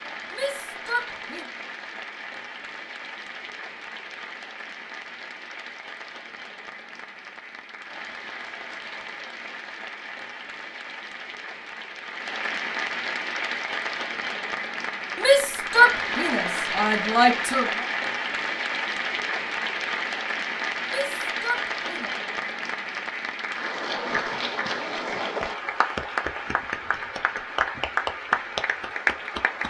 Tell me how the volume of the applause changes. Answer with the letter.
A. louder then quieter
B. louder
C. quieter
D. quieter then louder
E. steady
B.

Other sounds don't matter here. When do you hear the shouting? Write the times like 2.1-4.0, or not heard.
0.3-1.4, 15.2-17.9, 20.9-22.1.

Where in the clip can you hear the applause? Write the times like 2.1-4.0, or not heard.
0.0-29.6.